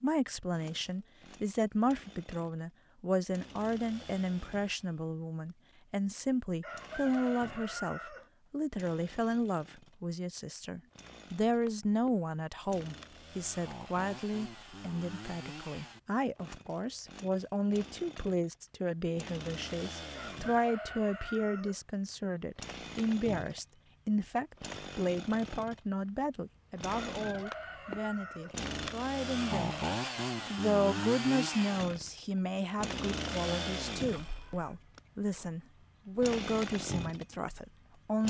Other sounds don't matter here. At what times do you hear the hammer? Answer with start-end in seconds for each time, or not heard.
not heard.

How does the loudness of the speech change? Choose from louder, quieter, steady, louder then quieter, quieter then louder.
steady.